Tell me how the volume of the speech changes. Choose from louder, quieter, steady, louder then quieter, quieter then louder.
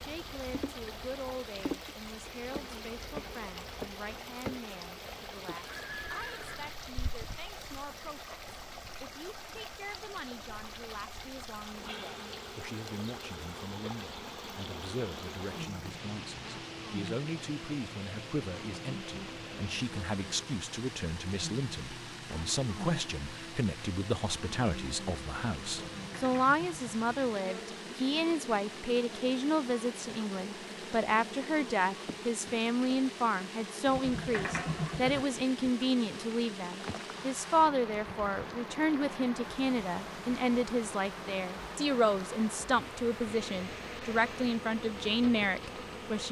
louder.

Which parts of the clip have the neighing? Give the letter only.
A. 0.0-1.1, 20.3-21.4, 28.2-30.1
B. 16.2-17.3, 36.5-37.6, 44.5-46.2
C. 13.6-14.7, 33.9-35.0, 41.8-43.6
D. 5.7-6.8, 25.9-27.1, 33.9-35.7
D.